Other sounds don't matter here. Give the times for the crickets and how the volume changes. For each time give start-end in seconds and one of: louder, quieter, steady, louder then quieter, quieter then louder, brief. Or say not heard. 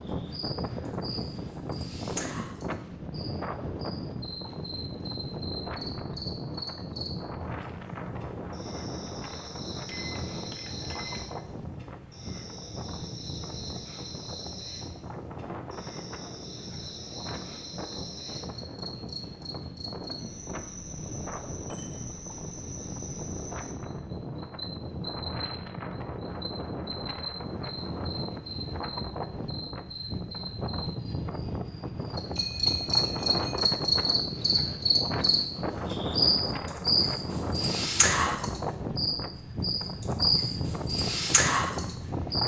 0.0-42.4 louder.